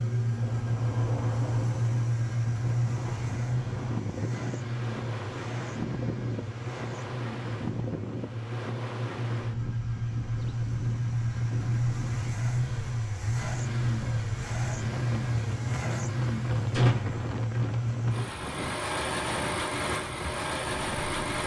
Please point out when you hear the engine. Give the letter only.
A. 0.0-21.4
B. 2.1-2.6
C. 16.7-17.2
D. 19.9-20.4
A.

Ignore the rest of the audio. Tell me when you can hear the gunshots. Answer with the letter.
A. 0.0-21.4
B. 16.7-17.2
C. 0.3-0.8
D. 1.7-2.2
B.